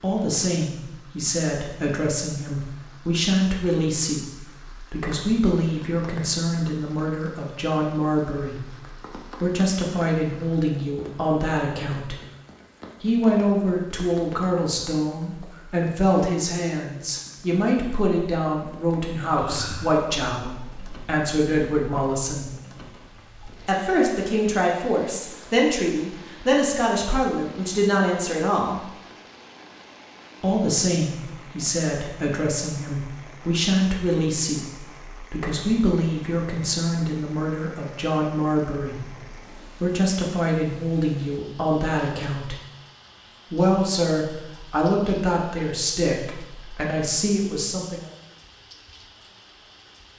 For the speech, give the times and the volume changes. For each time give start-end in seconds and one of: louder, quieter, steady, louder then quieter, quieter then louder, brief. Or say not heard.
0.0-12.2 steady
13.0-22.5 steady
23.6-28.9 steady
30.4-39.2 steady
39.8-42.5 brief
43.5-48.1 quieter then louder.